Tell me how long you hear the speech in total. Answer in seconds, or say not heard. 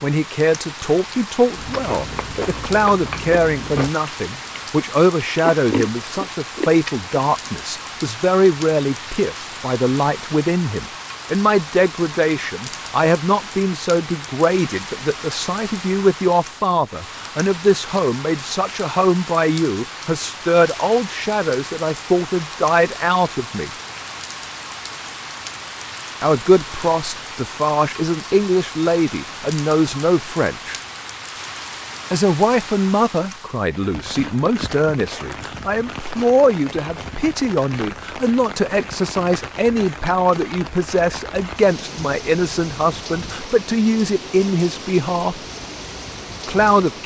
42 s.